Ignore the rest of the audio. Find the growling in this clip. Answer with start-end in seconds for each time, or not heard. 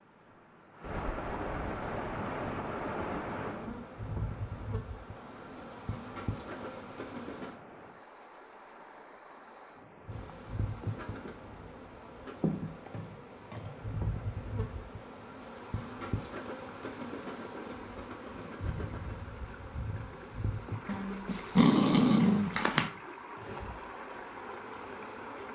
20.9-22.9.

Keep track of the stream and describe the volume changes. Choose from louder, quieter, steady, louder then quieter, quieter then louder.
quieter then louder.